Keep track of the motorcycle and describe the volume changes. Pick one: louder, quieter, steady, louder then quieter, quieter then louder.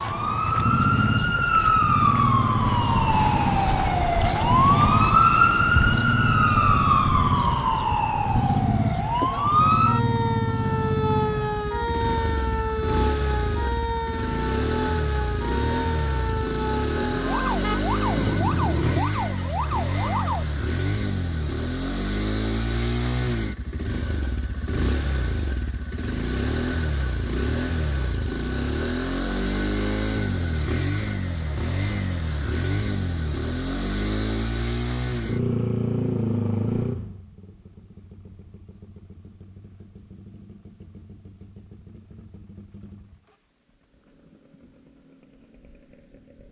quieter.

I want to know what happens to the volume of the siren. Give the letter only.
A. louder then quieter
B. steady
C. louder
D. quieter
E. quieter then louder
D.